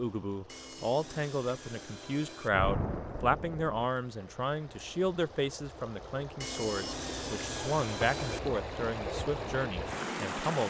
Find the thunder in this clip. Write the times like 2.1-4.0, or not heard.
2.5-3.8.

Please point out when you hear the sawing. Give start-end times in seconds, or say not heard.
0.5-2.5, 6.4-8.4.